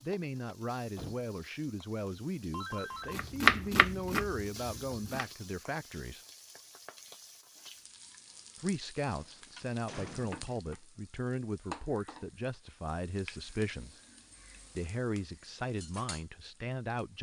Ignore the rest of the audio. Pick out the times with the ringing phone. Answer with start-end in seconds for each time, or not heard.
2.5-3.2.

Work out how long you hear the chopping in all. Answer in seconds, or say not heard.
2 s.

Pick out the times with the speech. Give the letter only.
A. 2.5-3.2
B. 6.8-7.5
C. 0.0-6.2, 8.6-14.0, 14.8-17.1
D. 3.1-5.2
C.